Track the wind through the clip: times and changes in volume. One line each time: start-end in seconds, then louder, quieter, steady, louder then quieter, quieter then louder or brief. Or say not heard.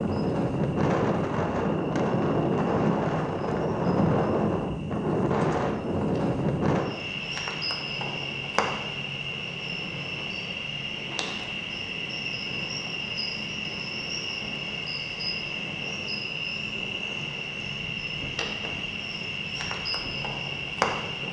0.0-21.2 quieter.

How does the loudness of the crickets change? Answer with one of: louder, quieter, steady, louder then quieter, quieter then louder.
louder.